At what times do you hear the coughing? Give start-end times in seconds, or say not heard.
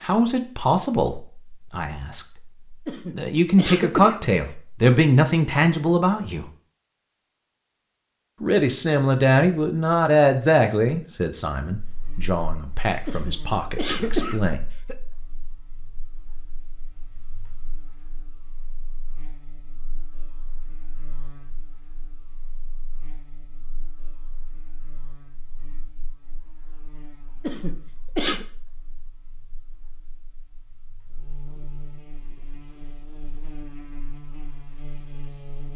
2.9-4.3, 13.1-14.9, 27.4-28.4.